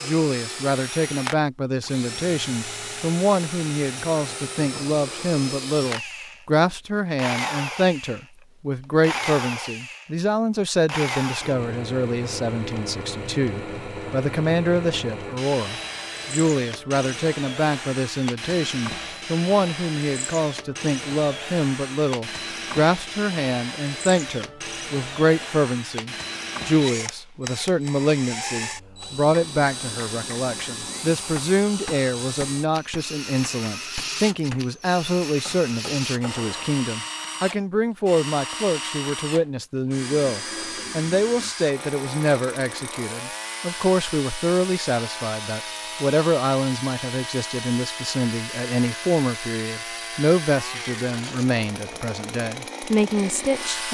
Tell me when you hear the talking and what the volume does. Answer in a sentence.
You can hear the talking from 0.0 to 53.8 s, at a steady volume.